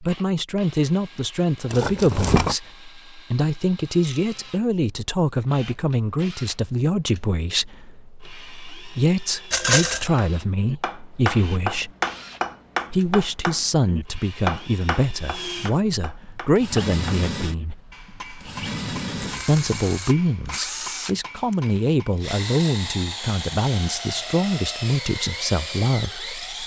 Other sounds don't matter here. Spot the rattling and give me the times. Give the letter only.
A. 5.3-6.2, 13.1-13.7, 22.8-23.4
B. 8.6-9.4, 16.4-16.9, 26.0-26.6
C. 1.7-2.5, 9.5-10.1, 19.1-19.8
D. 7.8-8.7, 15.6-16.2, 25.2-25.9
C.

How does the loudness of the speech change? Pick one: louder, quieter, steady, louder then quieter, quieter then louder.
steady.